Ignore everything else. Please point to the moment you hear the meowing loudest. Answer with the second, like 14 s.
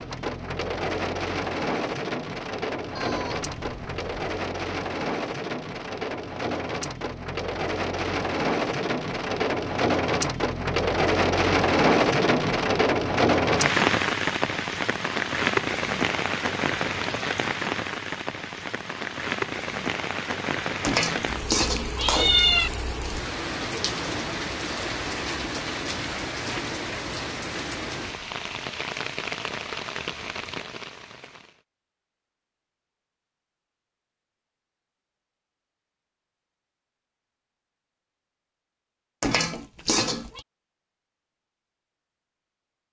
22 s.